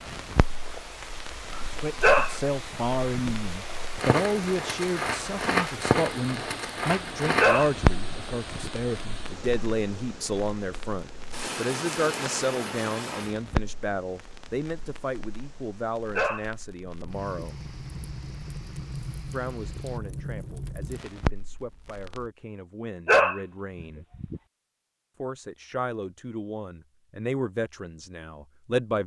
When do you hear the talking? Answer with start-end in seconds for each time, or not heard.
1.7-17.6, 19.3-24.1, 25.2-29.0.